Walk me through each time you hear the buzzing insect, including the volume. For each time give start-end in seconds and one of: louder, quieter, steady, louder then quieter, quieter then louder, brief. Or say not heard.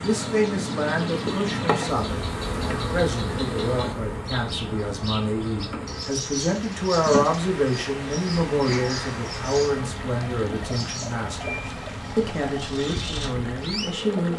0.0-14.3 quieter.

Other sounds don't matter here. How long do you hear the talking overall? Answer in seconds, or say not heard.
14 s.